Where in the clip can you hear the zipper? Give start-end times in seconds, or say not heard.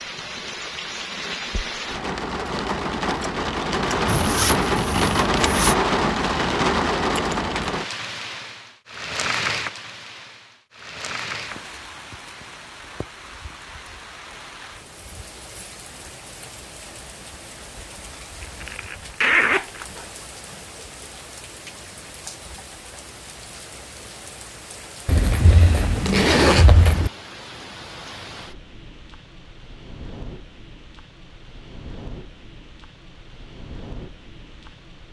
4.0-5.8, 18.4-20.1, 25.1-27.1.